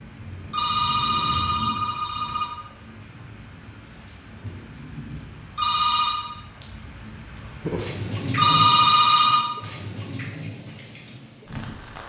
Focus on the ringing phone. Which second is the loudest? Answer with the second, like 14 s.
9 s.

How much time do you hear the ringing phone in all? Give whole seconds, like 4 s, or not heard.
4 s.